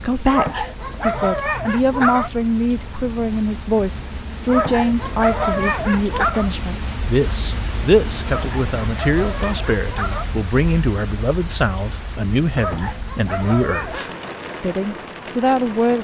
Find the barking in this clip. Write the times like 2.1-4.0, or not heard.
0.3-2.3, 4.5-6.5, 8.2-10.2, 12.6-14.2.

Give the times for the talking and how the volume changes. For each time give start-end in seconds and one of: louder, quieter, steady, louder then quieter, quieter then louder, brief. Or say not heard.
0.0-16.0 steady.